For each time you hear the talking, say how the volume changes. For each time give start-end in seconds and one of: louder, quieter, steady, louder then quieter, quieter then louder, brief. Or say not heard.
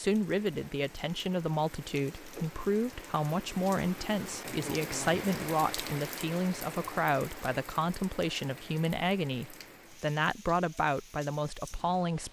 0.0-12.2 steady.